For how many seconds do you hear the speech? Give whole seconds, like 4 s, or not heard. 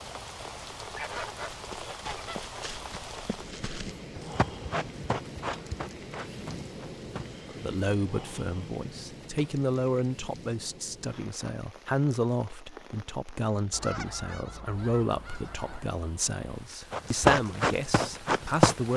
11 s.